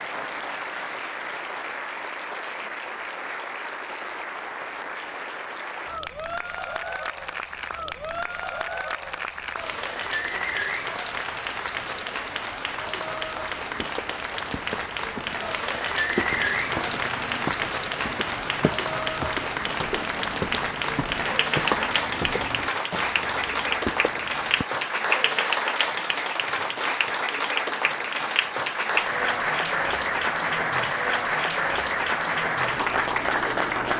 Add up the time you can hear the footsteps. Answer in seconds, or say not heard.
11 s.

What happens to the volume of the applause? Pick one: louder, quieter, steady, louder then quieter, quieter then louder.
louder.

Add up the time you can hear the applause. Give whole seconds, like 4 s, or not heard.
34 s.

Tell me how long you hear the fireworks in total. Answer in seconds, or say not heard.
not heard.